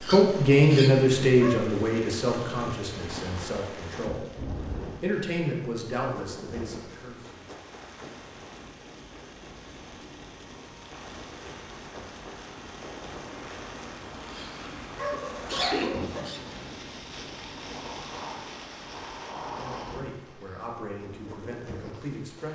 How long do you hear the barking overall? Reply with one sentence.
You can hear the barking for 4 seconds altogether.